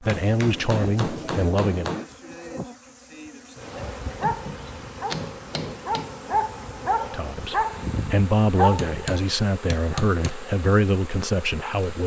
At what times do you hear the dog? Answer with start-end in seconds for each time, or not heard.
3.7-9.0.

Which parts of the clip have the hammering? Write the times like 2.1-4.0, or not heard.
0.1-2.1, 4.2-6.2, 8.8-10.3.